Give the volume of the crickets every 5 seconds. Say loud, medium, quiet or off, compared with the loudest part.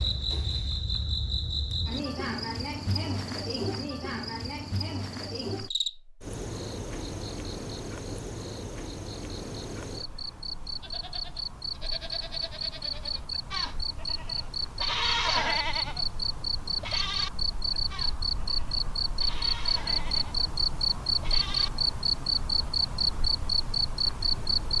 medium, medium, medium, loud, loud.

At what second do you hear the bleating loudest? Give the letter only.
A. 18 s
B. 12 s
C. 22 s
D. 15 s
D.